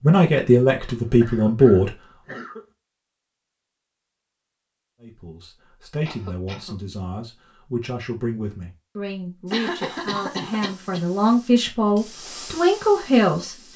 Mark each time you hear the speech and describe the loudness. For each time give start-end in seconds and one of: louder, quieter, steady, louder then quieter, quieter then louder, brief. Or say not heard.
0.0-1.9 brief
5.0-13.7 louder.